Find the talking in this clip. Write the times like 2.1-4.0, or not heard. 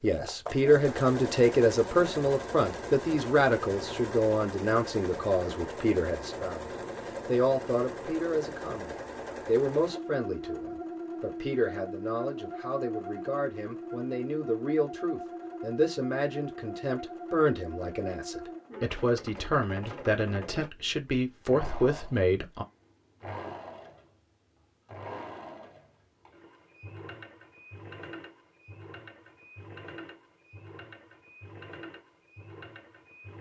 0.0-6.7, 7.2-22.6.